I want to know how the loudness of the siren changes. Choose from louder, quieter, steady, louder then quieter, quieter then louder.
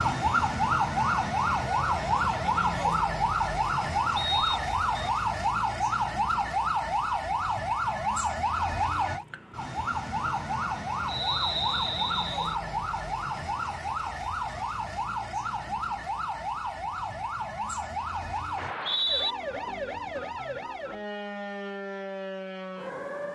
quieter.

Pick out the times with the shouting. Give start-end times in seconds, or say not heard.
not heard.